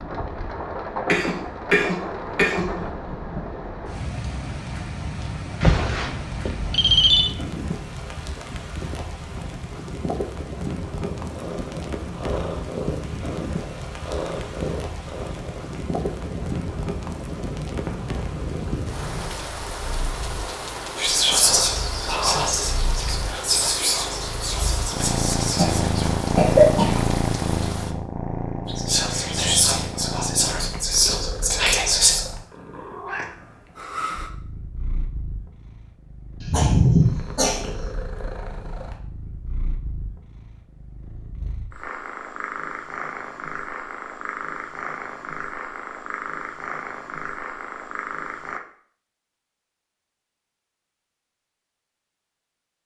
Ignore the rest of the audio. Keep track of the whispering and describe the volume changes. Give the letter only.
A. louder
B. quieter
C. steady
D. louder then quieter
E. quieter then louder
E.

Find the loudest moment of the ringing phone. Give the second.
7 s.